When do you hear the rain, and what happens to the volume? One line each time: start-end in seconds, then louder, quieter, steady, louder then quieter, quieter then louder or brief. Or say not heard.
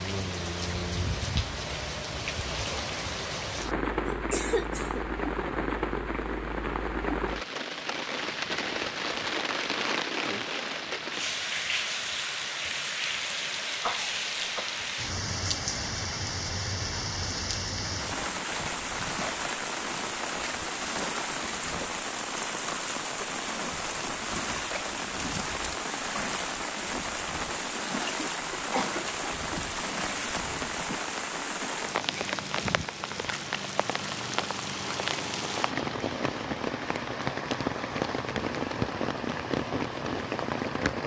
0.0-41.0 steady.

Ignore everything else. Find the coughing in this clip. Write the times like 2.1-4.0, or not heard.
4.0-5.0, 13.8-14.8, 28.1-29.4.